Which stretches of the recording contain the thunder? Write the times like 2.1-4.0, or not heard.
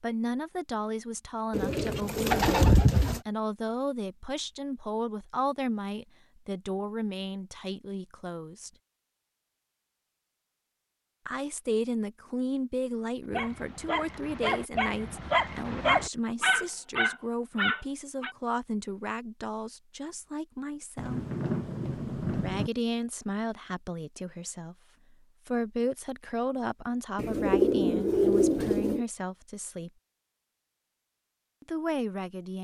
20.9-22.7.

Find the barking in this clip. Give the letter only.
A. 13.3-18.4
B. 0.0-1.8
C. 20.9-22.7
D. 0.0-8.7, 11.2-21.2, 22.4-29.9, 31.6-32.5
A.